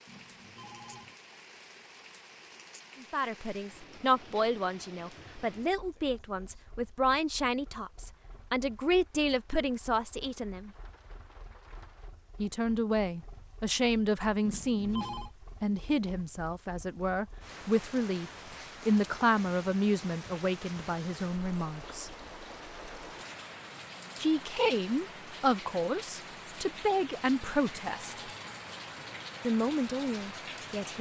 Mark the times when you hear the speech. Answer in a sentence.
You can hear the speech from 3.0 to 10.7 s, from 12.3 to 22.1 s, from 24.2 to 28.1 s and from 29.4 to 30.9 s.